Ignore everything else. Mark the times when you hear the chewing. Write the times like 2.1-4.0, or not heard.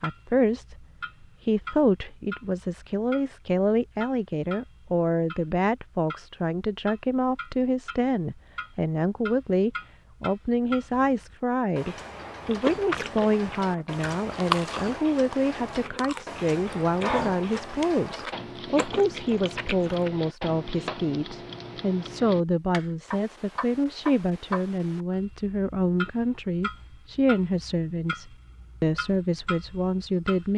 12.4-20.1.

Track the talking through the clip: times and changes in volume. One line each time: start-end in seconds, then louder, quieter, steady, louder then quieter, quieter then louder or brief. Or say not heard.
0.0-0.8 brief
1.4-30.5 steady.